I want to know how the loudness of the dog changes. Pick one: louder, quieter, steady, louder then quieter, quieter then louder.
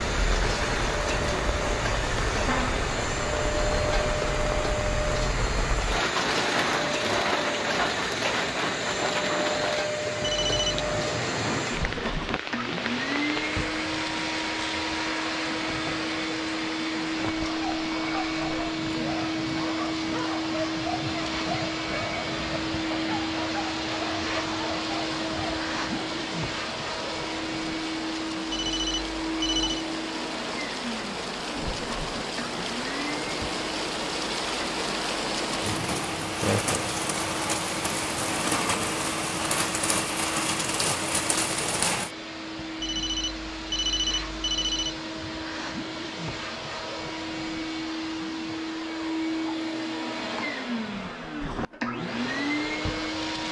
steady.